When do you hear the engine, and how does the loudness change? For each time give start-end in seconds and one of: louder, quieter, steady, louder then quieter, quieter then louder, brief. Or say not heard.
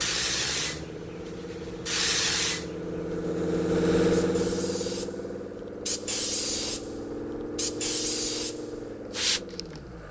0.0-10.0 louder then quieter.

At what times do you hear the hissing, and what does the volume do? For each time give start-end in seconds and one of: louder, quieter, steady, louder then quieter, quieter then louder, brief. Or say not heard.
0.0-9.8 quieter then louder.